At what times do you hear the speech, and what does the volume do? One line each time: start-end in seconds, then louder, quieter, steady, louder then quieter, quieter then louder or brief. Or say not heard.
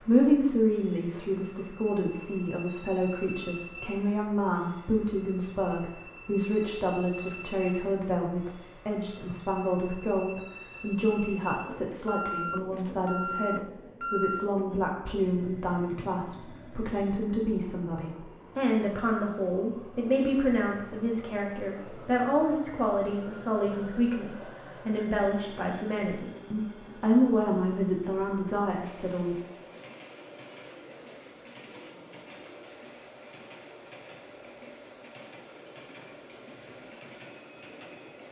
0.0-29.4 steady.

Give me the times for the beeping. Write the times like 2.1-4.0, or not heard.
12.1-14.5.